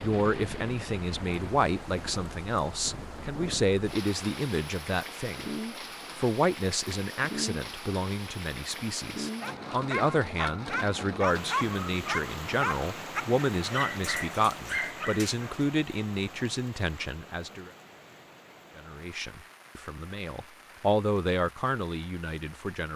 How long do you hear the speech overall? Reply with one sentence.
The speech can be heard for 21 seconds in total.